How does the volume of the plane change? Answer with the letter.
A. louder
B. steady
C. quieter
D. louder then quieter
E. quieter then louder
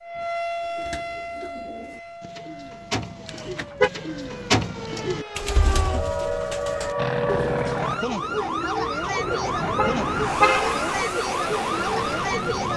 E.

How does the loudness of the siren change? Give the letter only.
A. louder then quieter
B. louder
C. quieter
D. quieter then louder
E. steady
D.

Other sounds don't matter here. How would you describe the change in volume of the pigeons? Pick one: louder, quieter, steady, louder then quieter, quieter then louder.
louder then quieter.